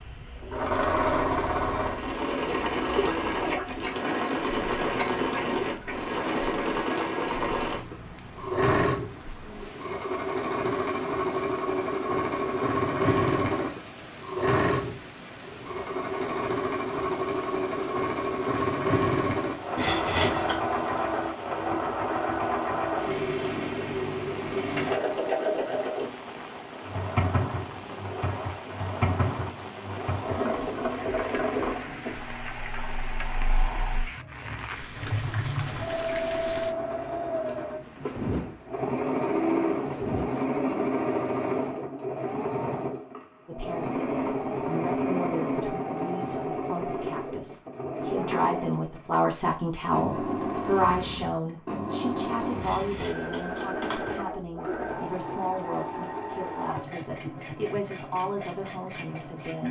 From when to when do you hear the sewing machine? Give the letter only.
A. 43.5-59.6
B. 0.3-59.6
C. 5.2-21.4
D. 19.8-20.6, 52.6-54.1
B.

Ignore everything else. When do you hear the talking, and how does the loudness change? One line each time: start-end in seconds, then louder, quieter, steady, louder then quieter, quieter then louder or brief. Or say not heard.
43.5-59.6 louder then quieter.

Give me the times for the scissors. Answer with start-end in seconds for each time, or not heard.
19.8-20.6, 52.6-54.1.